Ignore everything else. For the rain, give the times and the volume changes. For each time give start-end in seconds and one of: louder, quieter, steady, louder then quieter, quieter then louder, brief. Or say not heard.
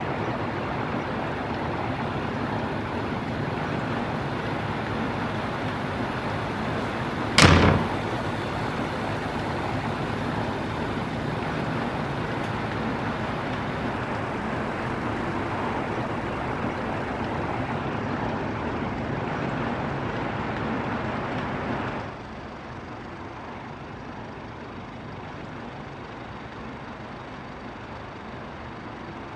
0.0-29.3 quieter.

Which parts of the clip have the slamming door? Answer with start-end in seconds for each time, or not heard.
6.8-7.9.